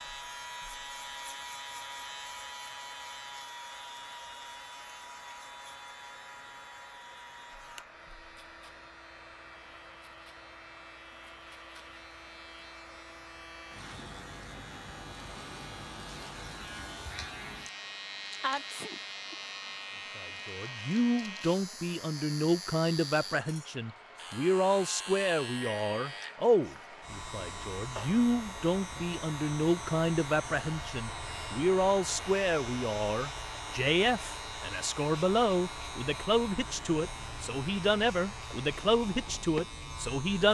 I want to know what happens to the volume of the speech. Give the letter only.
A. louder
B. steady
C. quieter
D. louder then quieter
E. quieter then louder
B.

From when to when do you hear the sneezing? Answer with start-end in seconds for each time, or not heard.
18.4-19.4.